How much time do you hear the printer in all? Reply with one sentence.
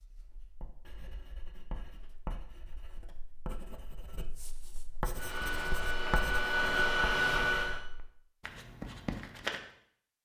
The printer can be heard for 3 seconds in total.